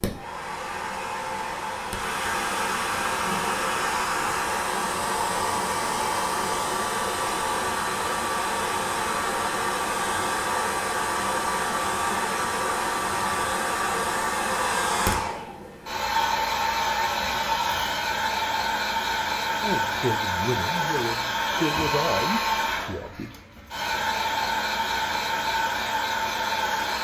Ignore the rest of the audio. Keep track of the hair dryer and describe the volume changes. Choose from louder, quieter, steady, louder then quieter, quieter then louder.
steady.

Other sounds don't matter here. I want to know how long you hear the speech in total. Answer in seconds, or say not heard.
4 s.